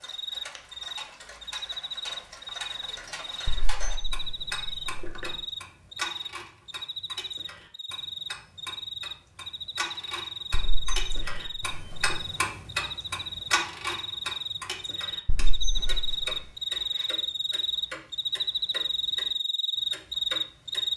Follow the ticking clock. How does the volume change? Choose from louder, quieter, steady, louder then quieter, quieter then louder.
louder then quieter.